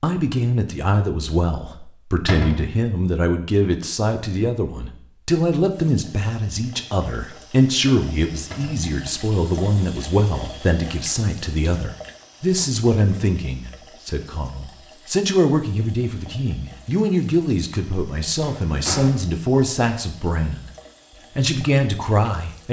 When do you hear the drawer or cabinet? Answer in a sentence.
You can hear the drawer or cabinet from 2.2 to 2.8 s, from 8.5 to 8.9 s and from 18.4 to 19.2 s.